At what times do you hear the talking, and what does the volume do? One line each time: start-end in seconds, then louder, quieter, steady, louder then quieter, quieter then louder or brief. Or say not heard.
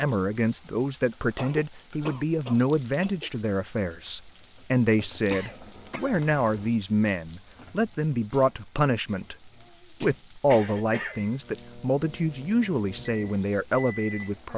0.0-14.5 steady.